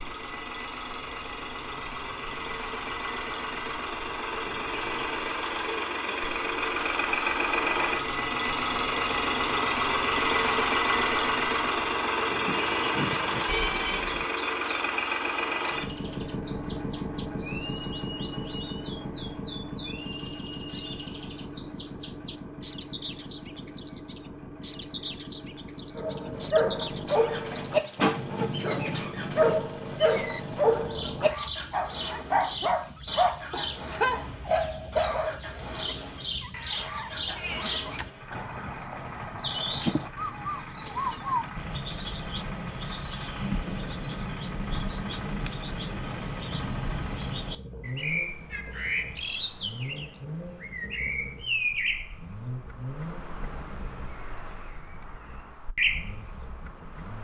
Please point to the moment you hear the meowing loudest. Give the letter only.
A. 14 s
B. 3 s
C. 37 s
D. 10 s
A.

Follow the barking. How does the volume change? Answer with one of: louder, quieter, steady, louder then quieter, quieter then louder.
steady.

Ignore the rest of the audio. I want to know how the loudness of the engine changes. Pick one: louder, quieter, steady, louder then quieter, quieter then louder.
quieter.